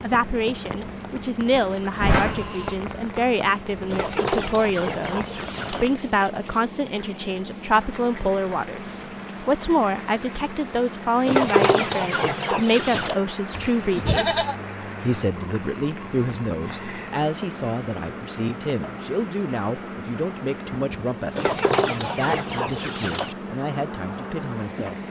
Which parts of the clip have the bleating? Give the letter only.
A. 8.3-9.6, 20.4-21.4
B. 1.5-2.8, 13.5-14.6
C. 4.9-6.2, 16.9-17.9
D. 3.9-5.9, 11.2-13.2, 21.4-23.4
B.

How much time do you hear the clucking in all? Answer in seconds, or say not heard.
6 s.